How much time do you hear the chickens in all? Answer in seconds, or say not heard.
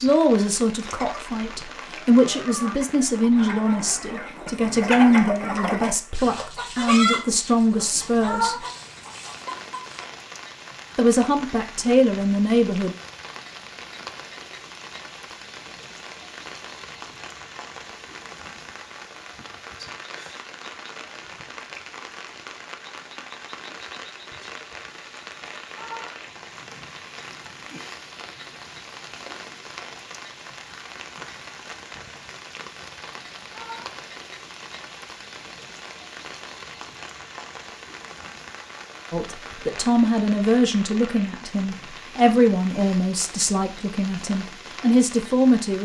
9 s.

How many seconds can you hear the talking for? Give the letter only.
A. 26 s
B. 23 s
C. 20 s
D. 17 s
D.